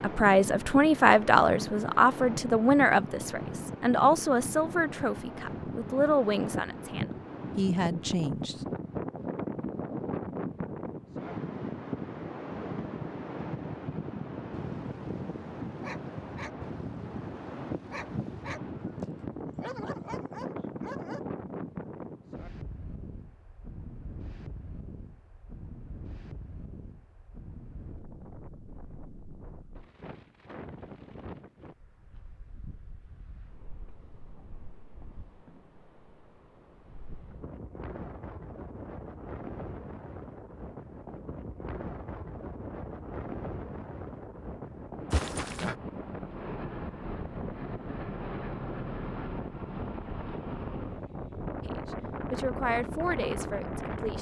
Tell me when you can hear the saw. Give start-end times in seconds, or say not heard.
not heard.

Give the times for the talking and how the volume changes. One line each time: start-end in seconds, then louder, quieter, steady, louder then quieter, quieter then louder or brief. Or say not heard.
0.0-8.7 quieter
51.6-54.1 brief.